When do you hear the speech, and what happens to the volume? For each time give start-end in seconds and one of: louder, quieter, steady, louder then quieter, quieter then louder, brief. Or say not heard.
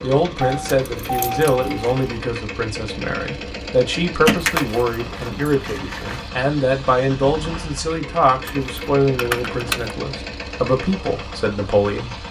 0.0-12.2 steady.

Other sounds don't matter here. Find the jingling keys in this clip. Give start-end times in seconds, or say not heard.
0.5-2.1, 4.2-6.2, 8.4-9.9.